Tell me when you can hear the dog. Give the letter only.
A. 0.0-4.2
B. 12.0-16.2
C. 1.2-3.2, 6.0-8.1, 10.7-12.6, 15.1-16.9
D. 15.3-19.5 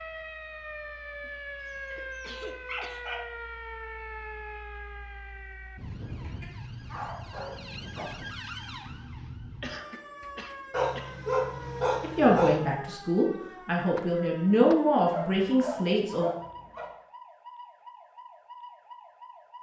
C.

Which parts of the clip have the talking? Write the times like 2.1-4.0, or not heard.
12.0-16.2.